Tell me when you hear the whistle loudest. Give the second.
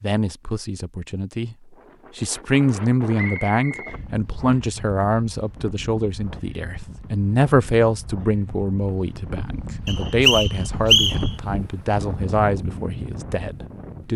11 s.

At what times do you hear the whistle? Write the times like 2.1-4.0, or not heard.
3.1-4.6, 9.8-11.3.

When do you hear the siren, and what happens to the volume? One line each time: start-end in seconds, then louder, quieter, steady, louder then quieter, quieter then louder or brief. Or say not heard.
not heard.